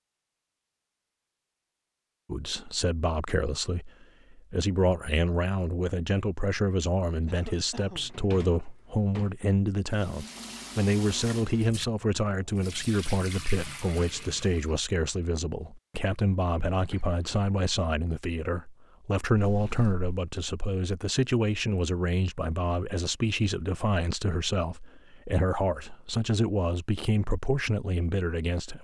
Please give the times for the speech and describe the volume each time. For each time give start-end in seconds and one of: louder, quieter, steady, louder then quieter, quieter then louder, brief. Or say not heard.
2.2-28.7 steady.